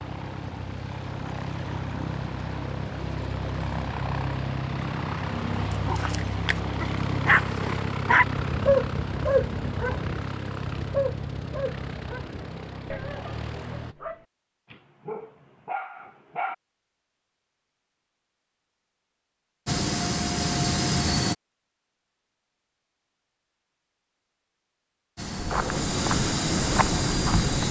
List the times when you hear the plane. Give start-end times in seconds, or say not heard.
0.0-13.9, 19.6-21.4, 25.1-27.6.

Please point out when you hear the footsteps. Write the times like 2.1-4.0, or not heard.
25.2-27.6.